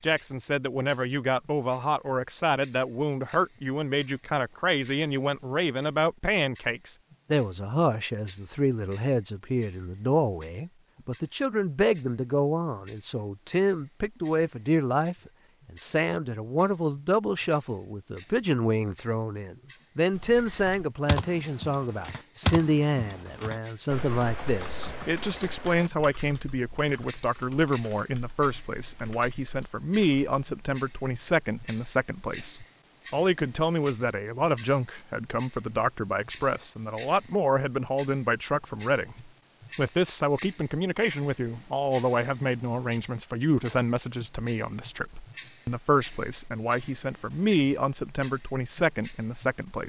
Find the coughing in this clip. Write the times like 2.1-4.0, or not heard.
not heard.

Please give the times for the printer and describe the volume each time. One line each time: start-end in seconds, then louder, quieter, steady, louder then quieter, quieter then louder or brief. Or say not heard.
not heard.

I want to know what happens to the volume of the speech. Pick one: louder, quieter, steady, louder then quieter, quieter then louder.
steady.